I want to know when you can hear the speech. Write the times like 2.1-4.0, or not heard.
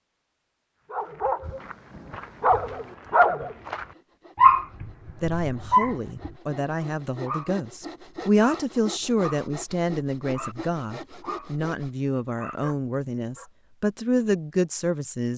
5.2-15.3.